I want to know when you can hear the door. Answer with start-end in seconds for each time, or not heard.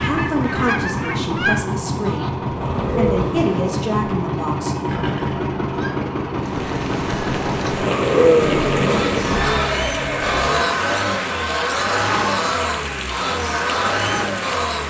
not heard.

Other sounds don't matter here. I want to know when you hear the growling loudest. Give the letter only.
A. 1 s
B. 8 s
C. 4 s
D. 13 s
B.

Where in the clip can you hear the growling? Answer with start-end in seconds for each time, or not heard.
2.5-3.9, 7.8-9.0.